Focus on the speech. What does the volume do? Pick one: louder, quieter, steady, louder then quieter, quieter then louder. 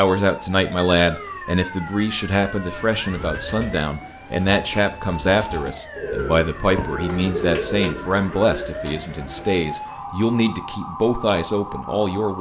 steady.